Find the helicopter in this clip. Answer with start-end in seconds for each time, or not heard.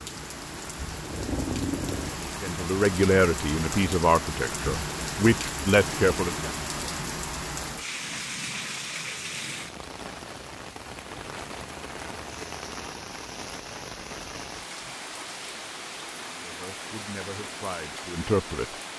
0.0-2.2.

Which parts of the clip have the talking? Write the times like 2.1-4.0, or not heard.
2.4-6.5, 16.4-18.9.